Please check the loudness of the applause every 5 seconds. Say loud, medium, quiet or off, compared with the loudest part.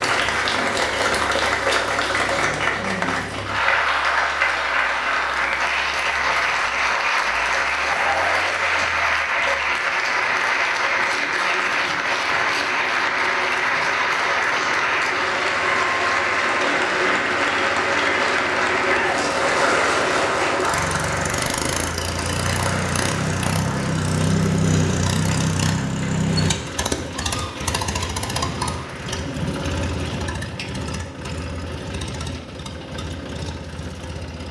loud, loud, loud, loud, medium, quiet, off.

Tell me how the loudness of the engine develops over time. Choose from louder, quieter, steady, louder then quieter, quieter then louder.
louder then quieter.